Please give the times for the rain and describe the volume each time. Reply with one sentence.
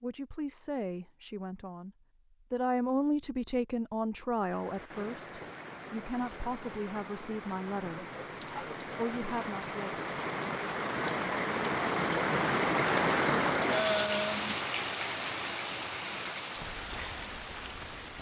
You can hear the rain from 4.3 to 18.1 s, getting louder then quieter.